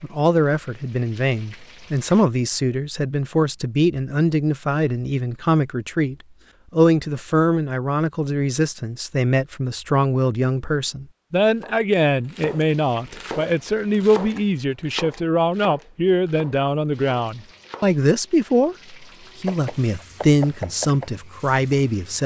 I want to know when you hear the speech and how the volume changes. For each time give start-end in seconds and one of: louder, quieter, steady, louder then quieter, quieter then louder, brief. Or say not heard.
0.0-22.2 steady.